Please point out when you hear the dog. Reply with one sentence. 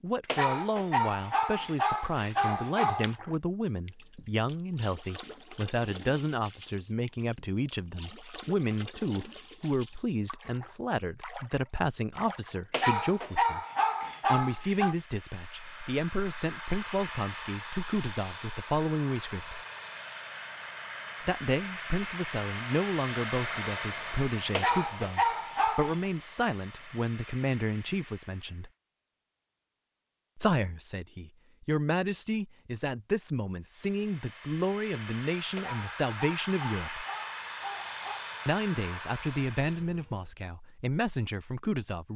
The dog can be heard from 0.2 to 3.1 s, from 12.7 to 14.9 s, from 24.5 to 26.0 s and from 35.5 to 38.2 s.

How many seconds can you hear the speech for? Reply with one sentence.
The speech can be heard for 37 seconds in total.